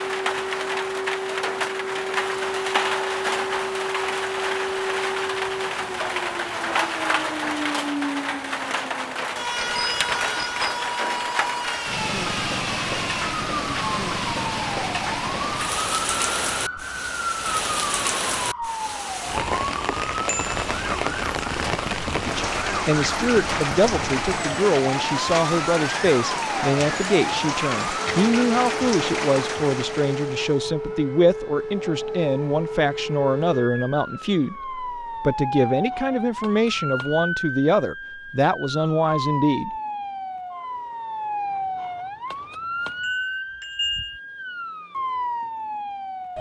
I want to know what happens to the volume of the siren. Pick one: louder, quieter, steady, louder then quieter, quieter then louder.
steady.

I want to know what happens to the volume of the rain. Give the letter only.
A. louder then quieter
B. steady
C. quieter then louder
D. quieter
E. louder
B.